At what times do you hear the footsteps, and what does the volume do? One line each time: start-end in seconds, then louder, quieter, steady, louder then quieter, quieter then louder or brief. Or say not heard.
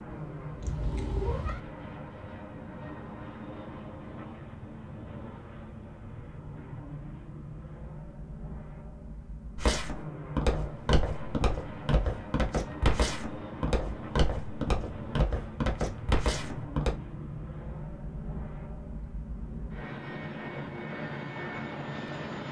9.6-16.9 steady.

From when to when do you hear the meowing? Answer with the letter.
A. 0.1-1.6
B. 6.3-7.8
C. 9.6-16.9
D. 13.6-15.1
A.